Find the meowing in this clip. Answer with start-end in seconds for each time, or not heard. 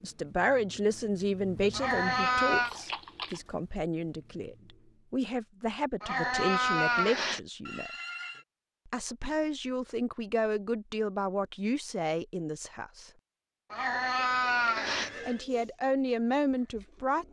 1.7-2.7, 6.0-7.4, 13.7-15.1.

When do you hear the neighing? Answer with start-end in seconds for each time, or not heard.
2.6-3.4, 7.7-8.4, 14.8-15.4.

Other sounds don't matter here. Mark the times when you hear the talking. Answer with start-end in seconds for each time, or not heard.
0.0-7.9, 8.8-13.1, 15.2-17.2.